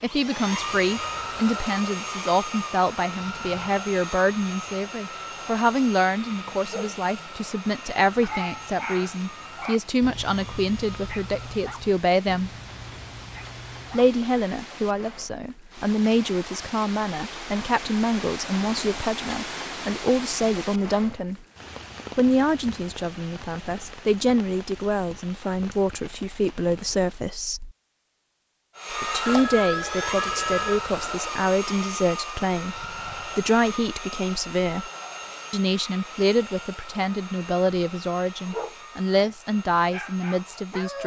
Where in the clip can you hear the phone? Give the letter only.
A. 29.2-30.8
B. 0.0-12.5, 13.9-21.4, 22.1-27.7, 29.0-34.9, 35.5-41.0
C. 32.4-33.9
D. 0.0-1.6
A.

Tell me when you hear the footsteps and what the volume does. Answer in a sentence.
You can't hear the footsteps here.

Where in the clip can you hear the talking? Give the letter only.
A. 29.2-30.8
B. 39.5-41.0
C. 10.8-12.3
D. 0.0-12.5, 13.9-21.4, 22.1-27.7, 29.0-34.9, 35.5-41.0
D.